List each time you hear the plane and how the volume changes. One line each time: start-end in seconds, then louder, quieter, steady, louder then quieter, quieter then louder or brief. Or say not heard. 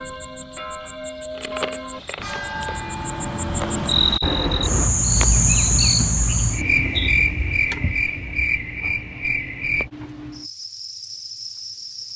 not heard.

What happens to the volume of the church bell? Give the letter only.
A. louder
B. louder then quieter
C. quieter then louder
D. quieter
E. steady
A.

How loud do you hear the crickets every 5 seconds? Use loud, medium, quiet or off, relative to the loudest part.
medium, loud, quiet.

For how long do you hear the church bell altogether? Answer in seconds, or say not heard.
5 s.